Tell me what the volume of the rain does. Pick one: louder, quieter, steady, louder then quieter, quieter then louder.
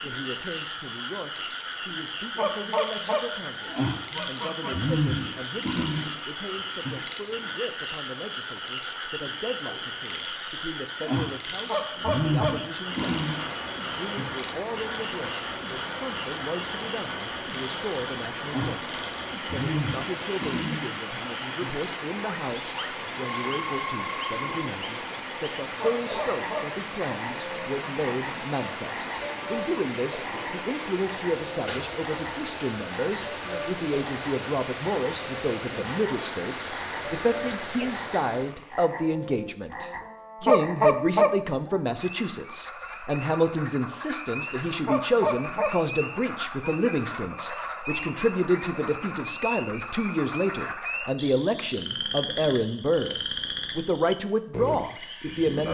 louder.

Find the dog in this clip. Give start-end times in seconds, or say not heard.
not heard.